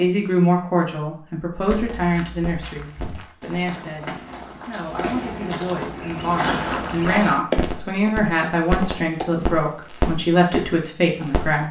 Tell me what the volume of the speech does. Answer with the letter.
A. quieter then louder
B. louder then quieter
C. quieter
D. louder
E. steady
A.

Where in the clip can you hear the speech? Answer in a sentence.
The speech can be heard from 0.0 to 11.6 s.